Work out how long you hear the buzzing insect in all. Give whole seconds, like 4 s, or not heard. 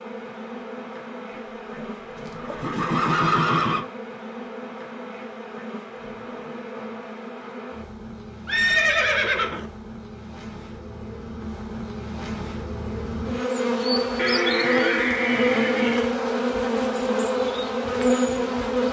19 s.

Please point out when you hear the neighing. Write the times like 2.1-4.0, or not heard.
1.8-3.9, 8.4-9.7, 14.2-16.1.